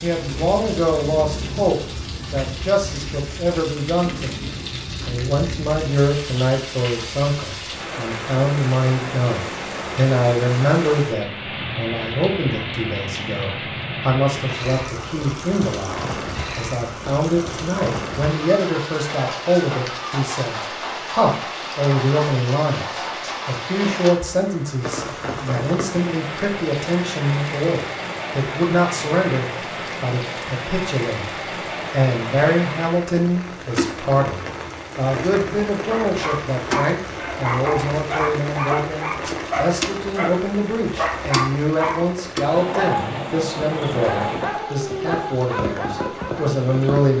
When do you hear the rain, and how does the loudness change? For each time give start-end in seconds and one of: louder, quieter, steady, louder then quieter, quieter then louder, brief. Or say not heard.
0.0-47.1 steady.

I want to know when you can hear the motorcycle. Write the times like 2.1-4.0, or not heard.
not heard.